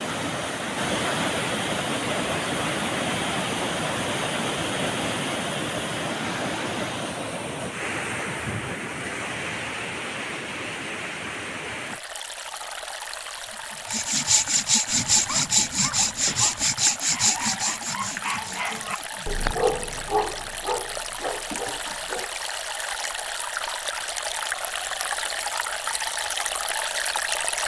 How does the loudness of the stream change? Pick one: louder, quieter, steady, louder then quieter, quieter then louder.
quieter then louder.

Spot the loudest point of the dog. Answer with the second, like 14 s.
20 s.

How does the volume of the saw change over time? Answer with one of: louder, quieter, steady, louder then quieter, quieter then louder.
quieter.